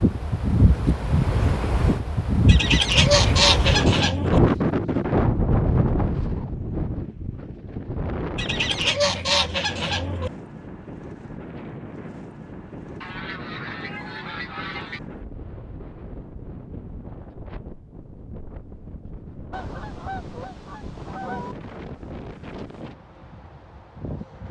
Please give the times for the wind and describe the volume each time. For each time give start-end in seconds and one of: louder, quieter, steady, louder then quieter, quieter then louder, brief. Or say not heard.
0.0-24.4 quieter.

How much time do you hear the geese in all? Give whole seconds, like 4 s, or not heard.
8 s.